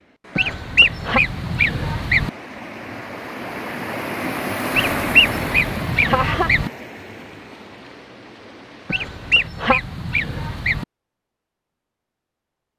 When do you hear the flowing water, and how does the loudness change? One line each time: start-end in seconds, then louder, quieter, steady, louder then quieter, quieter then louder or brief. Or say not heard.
0.0-9.5 louder then quieter.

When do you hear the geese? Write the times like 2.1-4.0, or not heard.
0.3-2.3, 4.8-6.7, 8.9-10.8.